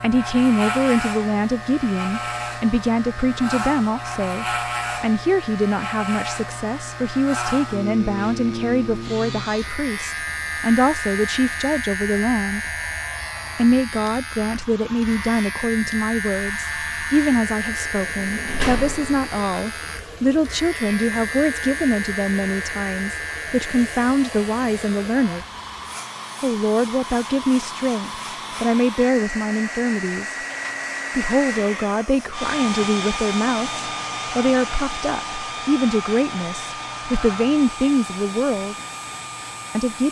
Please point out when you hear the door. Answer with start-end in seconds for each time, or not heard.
17.8-19.3.